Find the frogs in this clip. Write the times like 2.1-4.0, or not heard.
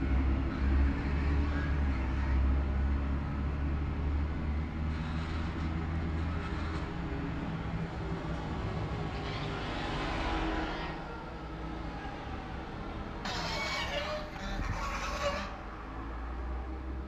not heard.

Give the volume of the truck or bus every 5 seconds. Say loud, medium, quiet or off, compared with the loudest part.
loud, loud, loud, medium.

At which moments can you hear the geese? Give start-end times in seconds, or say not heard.
0.5-2.5, 4.8-6.9, 9.1-11.1, 13.2-15.5.